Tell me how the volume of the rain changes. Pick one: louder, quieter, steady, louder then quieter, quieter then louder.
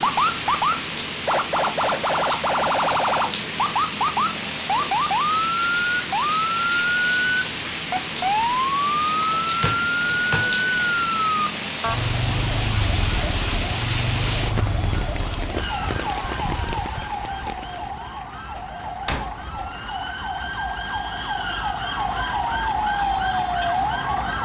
steady.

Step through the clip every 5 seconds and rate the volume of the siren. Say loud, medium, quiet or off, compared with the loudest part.
loud, loud, loud, medium, loud.